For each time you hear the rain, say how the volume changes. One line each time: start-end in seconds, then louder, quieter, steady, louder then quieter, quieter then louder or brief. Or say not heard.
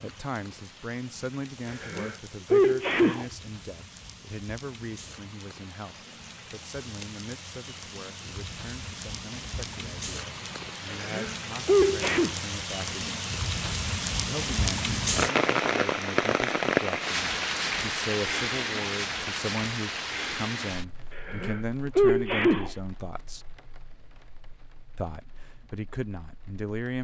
0.0-26.9 louder then quieter.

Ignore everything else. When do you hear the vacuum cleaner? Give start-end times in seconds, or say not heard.
not heard.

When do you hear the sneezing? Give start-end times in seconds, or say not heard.
1.7-3.2, 10.8-12.3, 21.1-22.7.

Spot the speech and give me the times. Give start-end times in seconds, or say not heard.
0.0-13.2, 14.2-23.4, 24.9-26.9.